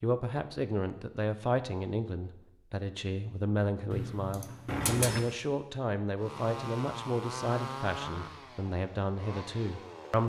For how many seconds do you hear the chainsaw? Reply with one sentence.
The chainsaw can be heard for 4 seconds in total.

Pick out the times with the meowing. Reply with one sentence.
The meowing can be heard from 3.9 to 5.2 s.